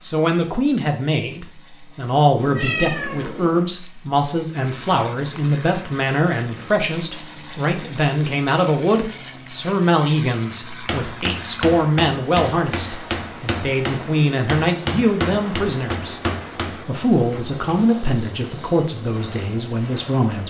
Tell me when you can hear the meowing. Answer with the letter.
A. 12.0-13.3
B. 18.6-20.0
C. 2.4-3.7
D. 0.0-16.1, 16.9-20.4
C.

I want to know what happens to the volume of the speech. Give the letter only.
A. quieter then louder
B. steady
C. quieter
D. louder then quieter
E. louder
B.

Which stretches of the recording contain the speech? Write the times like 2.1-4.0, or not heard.
0.0-16.1, 16.9-20.4.